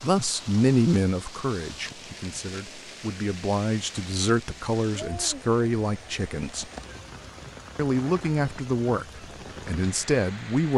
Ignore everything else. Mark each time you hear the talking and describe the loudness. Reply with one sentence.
You can hear the talking from 0.0 to 6.7 s, getting quieter then louder; and briefly from 7.8 to 10.7 s.